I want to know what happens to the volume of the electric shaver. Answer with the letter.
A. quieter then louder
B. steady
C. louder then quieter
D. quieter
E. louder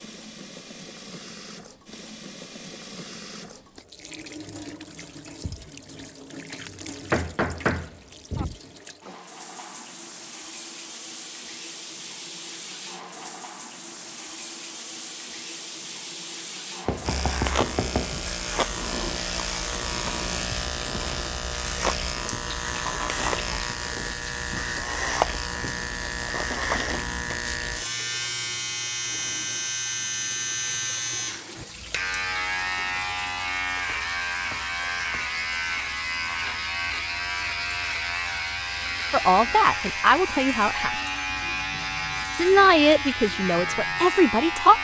B.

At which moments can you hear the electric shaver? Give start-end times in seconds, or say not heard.
17.0-44.7.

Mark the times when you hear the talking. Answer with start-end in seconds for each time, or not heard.
39.1-41.0, 42.4-44.7.